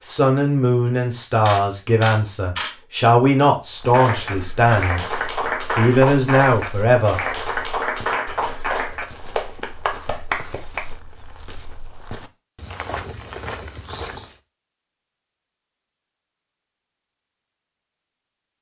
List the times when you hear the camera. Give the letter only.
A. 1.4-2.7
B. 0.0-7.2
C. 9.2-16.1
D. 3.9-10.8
A.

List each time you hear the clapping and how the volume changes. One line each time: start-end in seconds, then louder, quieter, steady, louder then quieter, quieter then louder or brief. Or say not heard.
3.9-10.8 steady.